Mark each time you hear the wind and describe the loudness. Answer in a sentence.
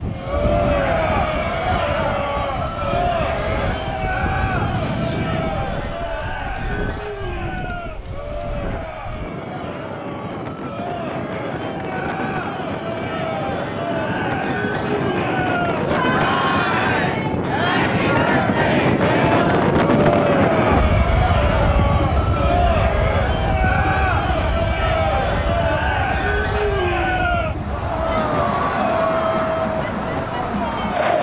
You can hear the wind from 0.0 to 31.1 s, getting louder then quieter.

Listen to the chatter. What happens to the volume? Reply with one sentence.
The volume of the chatter goes down, then up.